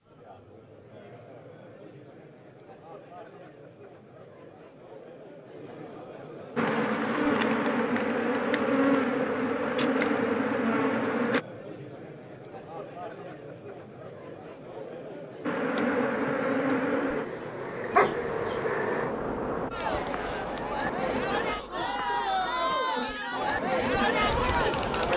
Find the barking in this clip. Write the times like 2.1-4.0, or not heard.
17.9-18.6.